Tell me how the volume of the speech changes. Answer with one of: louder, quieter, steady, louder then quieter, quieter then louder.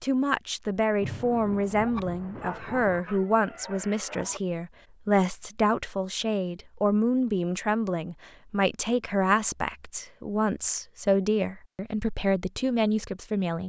steady.